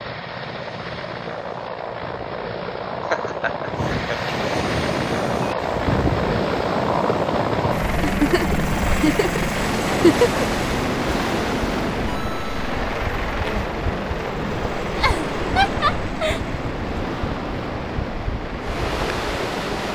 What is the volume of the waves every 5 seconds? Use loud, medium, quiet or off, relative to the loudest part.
medium, loud, loud, loud.